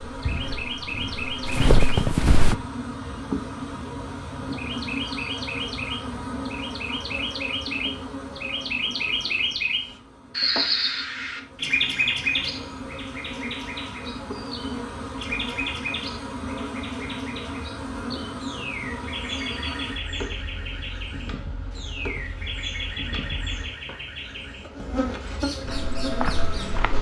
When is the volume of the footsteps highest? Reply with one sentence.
The loudest moment of the footsteps is at 2 seconds.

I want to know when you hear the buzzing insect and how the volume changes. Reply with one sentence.
You can hear the buzzing insect from 0.0 to 26.9 s, at a steady volume.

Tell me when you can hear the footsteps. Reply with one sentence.
You can hear the footsteps from 0.1 to 2.5 s and from 25.6 to 26.9 s.